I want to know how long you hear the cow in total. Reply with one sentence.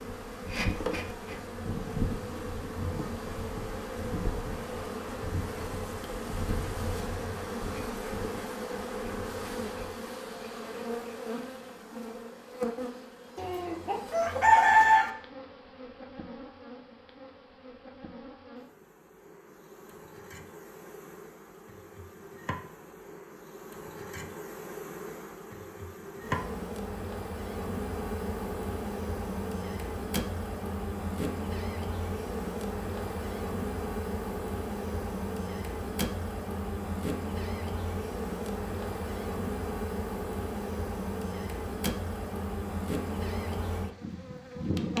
You can't hear the cow here.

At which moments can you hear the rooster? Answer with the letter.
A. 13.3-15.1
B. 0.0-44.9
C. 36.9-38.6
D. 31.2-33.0
A.